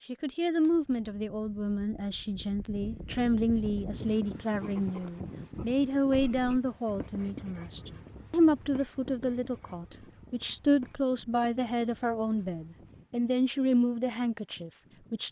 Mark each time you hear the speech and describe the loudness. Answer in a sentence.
The speech can be heard from 0.1 to 15.2 s, at a steady volume.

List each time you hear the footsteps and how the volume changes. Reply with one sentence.
The footsteps can't be heard in this clip.